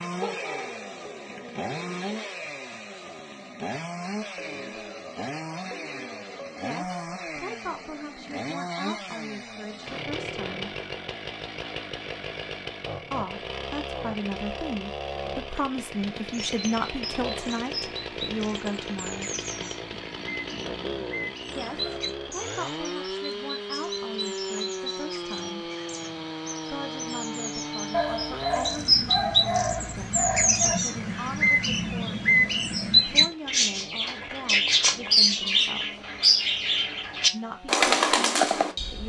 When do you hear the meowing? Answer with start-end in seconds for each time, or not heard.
not heard.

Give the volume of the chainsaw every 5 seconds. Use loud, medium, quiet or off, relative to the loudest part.
loud, loud, loud, loud, loud, loud, quiet, quiet.